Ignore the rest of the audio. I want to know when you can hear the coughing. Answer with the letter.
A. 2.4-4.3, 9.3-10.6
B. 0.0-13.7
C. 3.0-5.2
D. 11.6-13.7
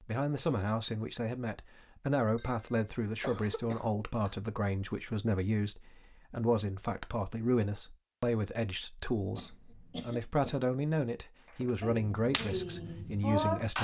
A.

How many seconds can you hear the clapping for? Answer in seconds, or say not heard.
2 s.